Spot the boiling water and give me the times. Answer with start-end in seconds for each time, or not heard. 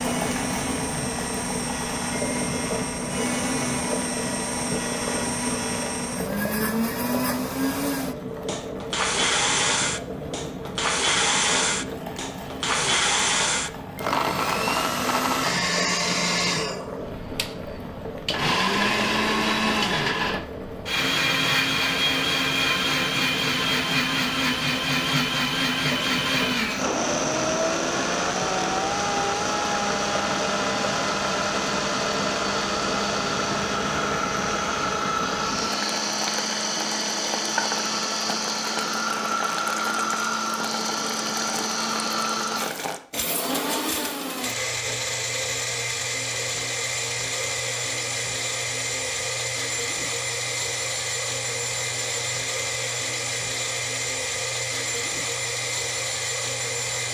0.0-43.0.